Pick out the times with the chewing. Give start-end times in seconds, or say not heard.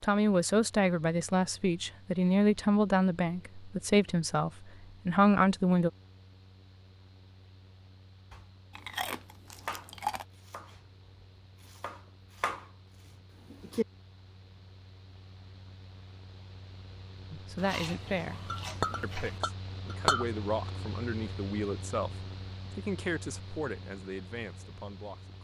8.8-10.2, 17.6-19.4.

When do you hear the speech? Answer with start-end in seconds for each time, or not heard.
0.0-5.9, 17.3-25.3.